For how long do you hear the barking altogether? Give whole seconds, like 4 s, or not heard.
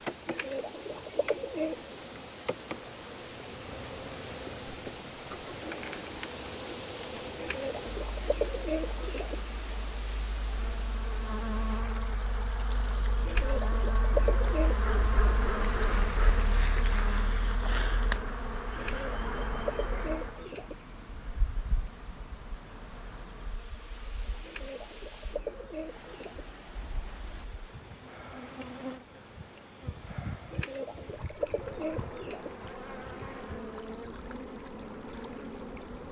2 s.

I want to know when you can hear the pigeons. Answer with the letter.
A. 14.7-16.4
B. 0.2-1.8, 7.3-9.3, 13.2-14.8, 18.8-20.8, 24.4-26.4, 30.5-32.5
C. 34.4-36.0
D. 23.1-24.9
B.